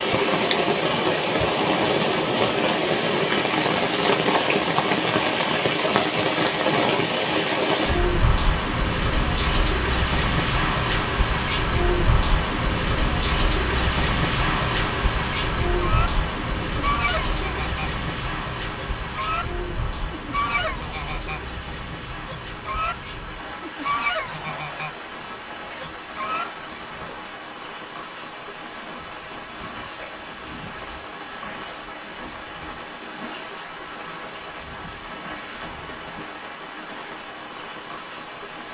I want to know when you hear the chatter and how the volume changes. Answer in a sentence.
You can't hear the chatter here.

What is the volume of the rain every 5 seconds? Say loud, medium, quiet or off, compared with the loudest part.
loud, loud, loud, medium, quiet, quiet, quiet, quiet.